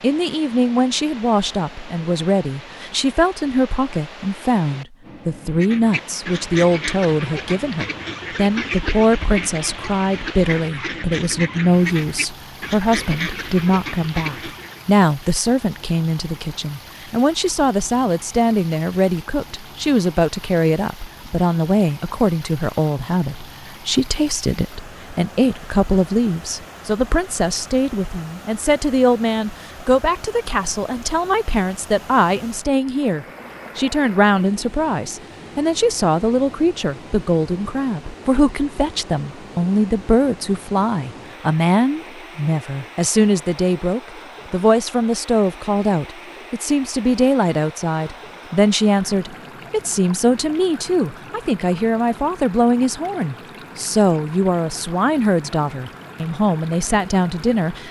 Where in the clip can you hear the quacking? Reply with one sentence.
The quacking can be heard from 5.5 to 14.8 s.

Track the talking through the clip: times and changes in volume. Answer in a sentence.
The talking can be heard from 0.0 to 57.8 s, at a steady volume.